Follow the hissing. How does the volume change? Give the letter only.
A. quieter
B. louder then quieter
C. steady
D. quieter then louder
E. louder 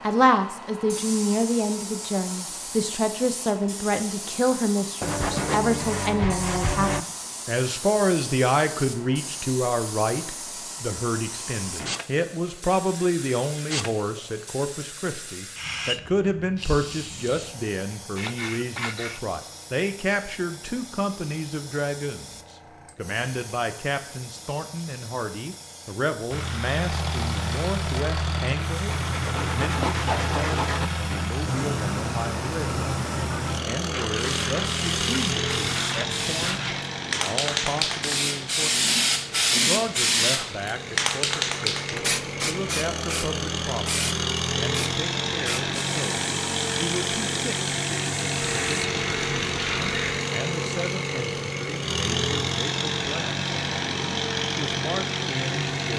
D.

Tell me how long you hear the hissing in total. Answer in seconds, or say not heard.
49 s.